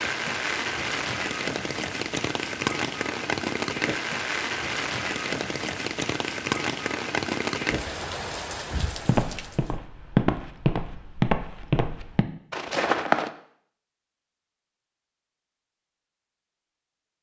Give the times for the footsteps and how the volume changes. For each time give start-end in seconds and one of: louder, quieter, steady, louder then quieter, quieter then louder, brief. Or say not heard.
8.8-13.3 louder then quieter.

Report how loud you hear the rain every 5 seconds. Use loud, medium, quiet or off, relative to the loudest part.
loud, loud, off, off.